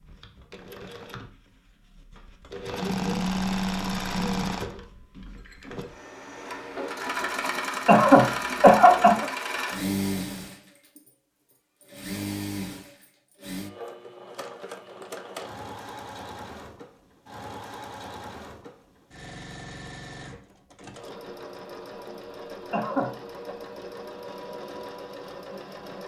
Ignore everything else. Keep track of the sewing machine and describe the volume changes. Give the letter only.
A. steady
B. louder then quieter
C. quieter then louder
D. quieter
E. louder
D.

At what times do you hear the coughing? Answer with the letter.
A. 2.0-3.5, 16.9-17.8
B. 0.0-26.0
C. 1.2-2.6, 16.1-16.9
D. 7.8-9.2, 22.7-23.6
D.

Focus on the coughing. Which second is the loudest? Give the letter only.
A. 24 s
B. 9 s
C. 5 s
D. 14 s
B.